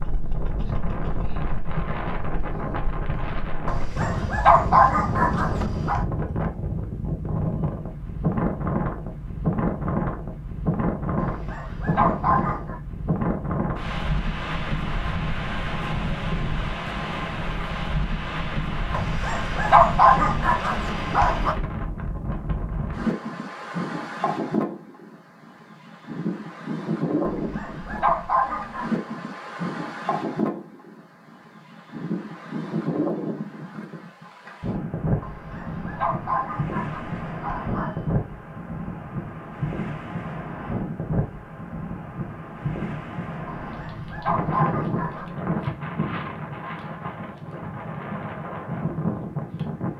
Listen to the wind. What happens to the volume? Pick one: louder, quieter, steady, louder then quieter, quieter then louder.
steady.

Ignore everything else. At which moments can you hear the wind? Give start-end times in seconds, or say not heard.
0.0-49.9.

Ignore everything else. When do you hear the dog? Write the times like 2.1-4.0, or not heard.
3.6-6.0, 11.2-12.8, 18.9-21.6, 27.2-28.9, 35.2-38.1, 43.5-45.4.